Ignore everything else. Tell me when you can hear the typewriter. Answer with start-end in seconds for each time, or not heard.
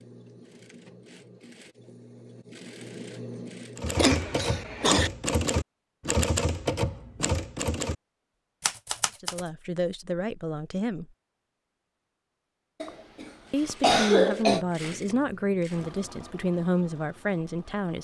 3.8-8.0, 8.6-9.4.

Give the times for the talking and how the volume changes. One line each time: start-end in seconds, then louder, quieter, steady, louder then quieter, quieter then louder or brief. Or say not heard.
9.2-11.1 brief
13.5-17.9 steady.